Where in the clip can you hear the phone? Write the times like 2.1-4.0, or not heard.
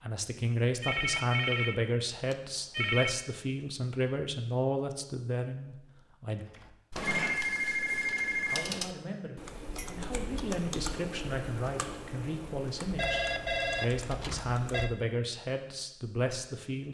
0.8-3.2, 7.0-8.8, 12.9-14.9.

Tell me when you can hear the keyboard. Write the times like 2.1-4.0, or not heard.
6.3-14.8.